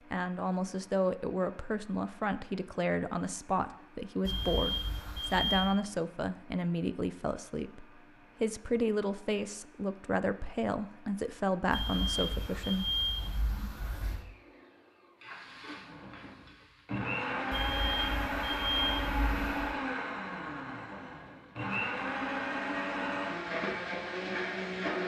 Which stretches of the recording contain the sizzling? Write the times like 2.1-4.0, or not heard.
15.2-17.1.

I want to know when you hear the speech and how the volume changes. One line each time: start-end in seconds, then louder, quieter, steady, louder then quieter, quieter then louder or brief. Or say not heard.
0.1-12.9 steady.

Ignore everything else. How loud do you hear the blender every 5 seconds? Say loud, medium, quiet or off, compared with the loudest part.
quiet, quiet, quiet, loud, loud.